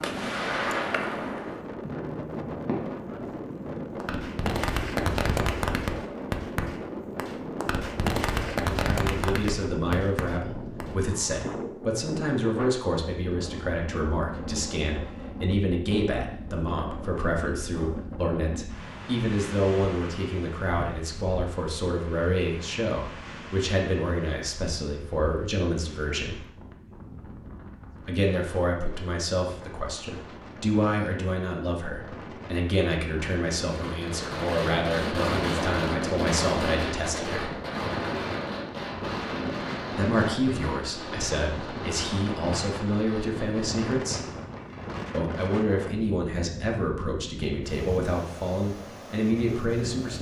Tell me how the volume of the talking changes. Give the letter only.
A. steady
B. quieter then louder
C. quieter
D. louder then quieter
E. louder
A.